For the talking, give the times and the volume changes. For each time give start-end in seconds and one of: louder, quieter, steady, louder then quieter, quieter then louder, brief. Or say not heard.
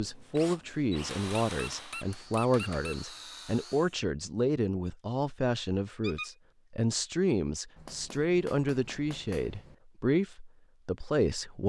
0.0-11.6 steady.